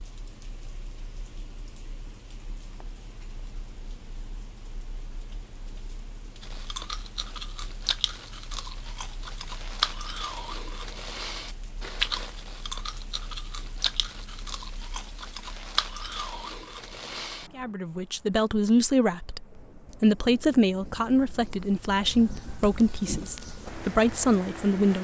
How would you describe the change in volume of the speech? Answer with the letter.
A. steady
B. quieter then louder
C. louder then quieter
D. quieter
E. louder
A.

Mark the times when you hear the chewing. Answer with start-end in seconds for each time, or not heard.
6.4-17.6.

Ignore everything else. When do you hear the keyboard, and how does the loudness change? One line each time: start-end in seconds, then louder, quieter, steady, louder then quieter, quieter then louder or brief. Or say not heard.
not heard.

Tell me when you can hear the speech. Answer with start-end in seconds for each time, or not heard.
17.6-24.9.